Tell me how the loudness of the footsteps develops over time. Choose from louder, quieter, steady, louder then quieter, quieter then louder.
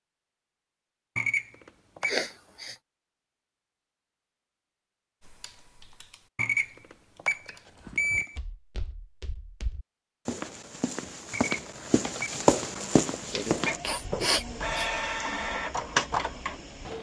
louder.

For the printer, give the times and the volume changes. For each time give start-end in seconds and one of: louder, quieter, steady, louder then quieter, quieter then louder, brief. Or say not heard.
12.1-16.9 louder.